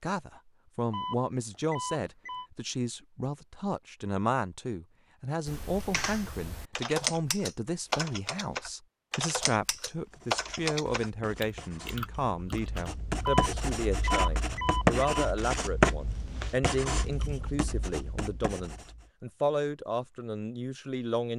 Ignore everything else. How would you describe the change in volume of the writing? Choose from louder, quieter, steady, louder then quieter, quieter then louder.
louder then quieter.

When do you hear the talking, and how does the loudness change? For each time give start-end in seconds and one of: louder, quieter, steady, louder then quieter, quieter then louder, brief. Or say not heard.
0.0-21.3 steady.